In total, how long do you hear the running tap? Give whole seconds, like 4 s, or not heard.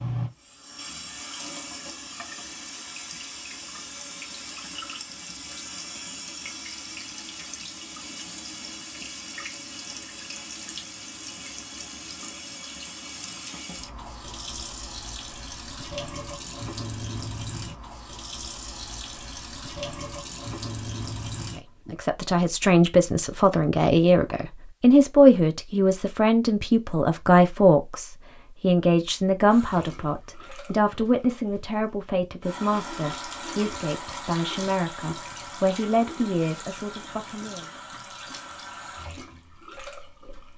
33 s.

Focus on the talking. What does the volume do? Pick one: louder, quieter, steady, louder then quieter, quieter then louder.
quieter.